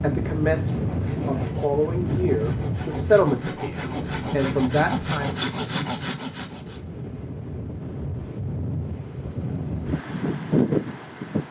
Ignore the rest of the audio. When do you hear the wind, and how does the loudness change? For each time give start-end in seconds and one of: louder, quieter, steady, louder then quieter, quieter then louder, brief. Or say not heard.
0.0-11.4 quieter then louder.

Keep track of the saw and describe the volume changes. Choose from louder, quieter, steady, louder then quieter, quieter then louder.
louder.